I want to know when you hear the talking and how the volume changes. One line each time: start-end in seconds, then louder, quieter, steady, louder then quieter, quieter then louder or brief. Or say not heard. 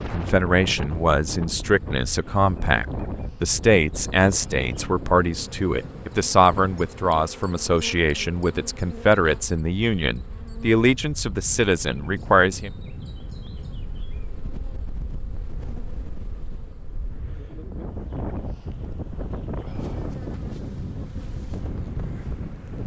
0.1-12.7 steady.